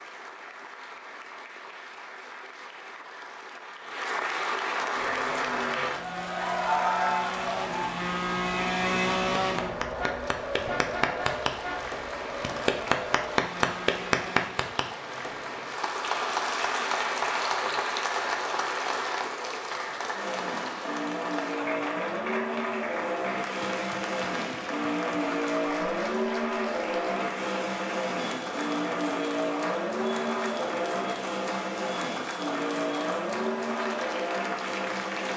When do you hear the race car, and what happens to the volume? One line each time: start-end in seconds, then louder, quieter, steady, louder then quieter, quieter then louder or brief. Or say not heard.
4.9-14.6 louder then quieter
20.1-35.3 steady.